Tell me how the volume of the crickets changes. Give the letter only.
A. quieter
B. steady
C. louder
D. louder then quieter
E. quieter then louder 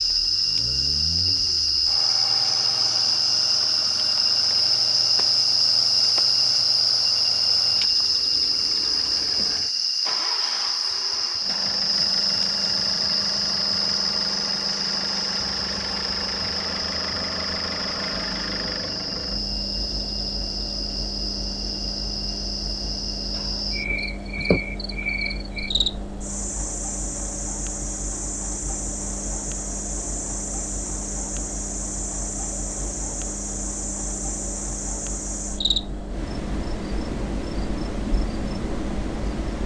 A.